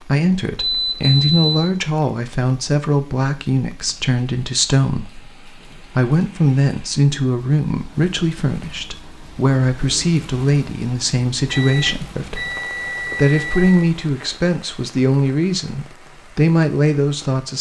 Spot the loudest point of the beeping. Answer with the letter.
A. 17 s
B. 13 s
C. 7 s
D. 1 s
D.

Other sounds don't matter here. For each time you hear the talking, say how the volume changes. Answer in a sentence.
The talking can be heard from 0.0 to 17.5 s, at a steady volume.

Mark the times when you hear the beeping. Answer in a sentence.
The beeping can be heard from 0.6 to 1.5 s and from 11.4 to 13.9 s.